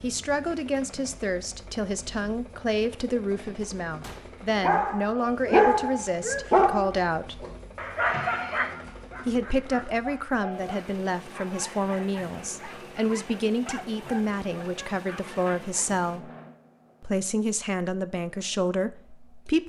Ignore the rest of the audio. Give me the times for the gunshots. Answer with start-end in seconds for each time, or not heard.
4.0-4.5.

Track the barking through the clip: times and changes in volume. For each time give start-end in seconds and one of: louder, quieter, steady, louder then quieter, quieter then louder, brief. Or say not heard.
4.6-15.9 quieter.